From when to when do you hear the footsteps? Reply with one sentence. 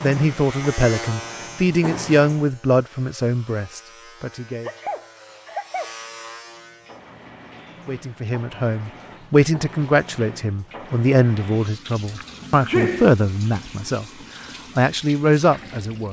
You can't hear the footsteps here.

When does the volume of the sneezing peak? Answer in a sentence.
The loudest moment of the sneezing is at 13 seconds.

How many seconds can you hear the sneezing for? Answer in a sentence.
The sneezing can be heard for 2 seconds in total.